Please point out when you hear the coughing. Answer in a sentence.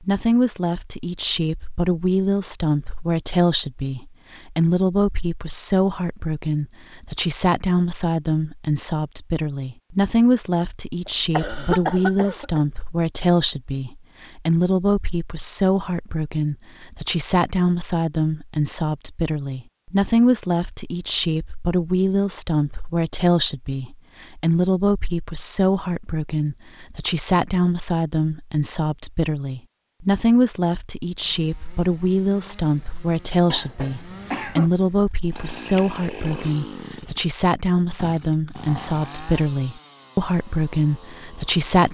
The coughing can be heard from 11.1 to 12.6 s and from 33.5 to 34.7 s.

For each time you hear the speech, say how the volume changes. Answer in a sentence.
You can hear the speech from 0.0 to 41.8 s, at a steady volume.